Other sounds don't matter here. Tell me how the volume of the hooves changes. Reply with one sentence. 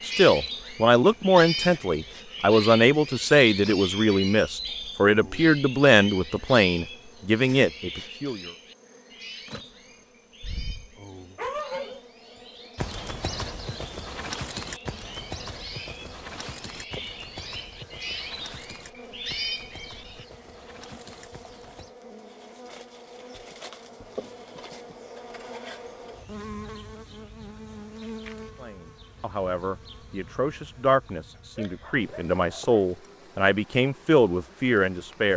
The loudness of the hooves goes down.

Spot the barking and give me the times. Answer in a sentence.
You can hear the barking from 10.4 to 12.0 s and from 31.4 to 32.9 s.